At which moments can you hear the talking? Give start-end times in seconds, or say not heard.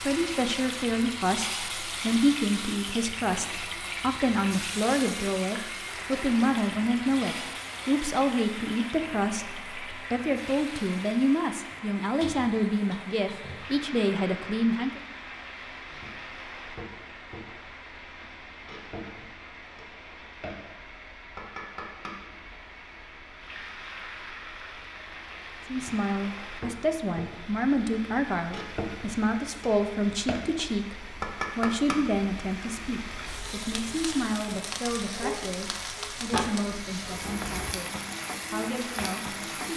0.0-15.0, 25.7-30.9, 31.6-39.7.